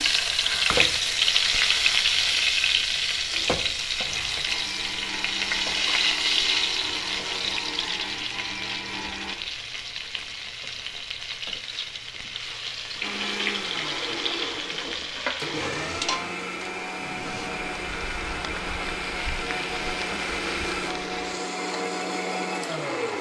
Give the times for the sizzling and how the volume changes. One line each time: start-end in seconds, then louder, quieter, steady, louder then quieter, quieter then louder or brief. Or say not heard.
0.0-23.1 quieter.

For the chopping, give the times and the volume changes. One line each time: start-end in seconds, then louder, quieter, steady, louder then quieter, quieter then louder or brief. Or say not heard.
not heard.